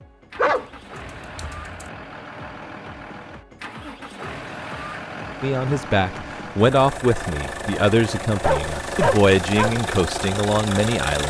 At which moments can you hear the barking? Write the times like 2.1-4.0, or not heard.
0.3-1.9, 8.4-9.8.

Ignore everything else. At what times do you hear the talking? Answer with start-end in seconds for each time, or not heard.
5.4-11.2.